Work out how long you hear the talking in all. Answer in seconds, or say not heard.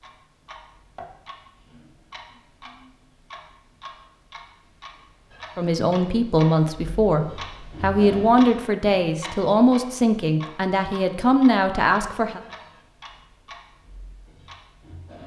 7 s.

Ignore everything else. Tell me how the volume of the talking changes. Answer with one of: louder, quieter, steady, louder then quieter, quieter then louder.
steady.